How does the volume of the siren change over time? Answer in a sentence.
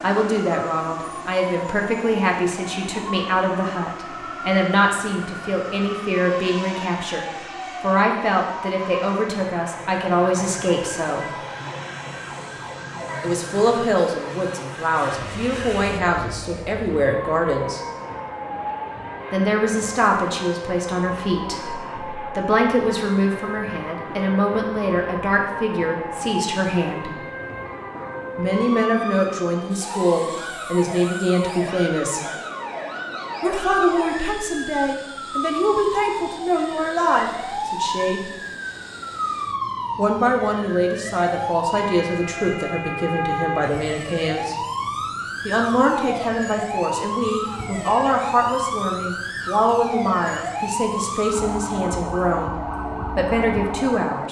The volume of the siren goes up.